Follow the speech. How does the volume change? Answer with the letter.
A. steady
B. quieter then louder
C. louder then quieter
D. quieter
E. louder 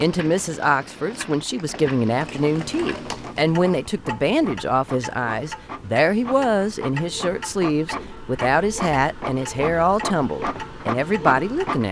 A.